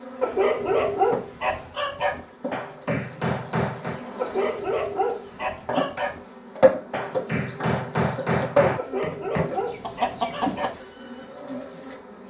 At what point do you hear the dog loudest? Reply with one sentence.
The loudest moment of the dog is at 1 second.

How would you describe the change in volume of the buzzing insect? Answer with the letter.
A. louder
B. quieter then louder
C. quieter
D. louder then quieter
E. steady
D.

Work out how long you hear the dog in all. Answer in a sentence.
You can hear the dog for 6 seconds altogether.